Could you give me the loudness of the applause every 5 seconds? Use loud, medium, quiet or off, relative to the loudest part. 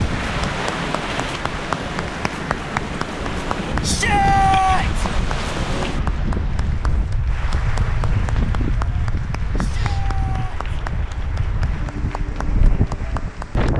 loud, medium, medium.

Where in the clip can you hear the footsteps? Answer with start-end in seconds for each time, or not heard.
not heard.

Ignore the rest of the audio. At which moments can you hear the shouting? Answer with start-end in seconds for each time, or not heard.
3.8-5.0, 9.6-10.8.